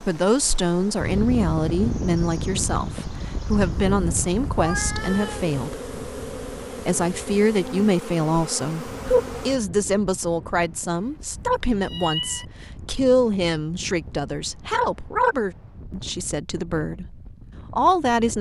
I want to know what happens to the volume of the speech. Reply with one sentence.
The volume of the speech stays about the same.